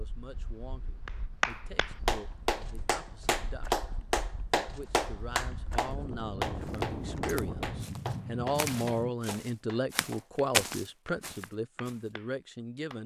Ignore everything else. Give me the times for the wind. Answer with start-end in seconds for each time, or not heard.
0.0-9.1.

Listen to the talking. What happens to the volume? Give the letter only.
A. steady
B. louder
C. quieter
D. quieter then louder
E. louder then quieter
B.